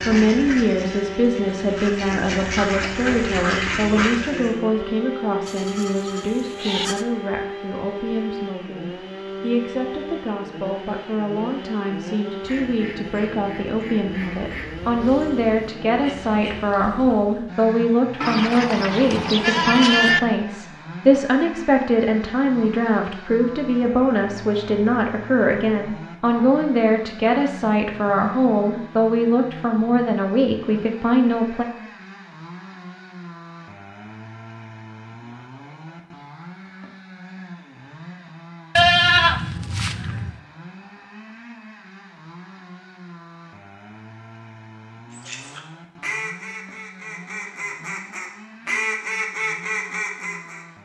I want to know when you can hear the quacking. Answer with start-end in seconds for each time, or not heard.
0.0-4.5, 12.4-17.5, 45.1-50.6.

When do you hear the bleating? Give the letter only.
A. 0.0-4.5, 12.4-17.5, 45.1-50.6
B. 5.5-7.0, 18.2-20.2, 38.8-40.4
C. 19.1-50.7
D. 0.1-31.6
B.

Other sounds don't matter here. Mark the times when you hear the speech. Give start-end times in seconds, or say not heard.
0.1-31.6.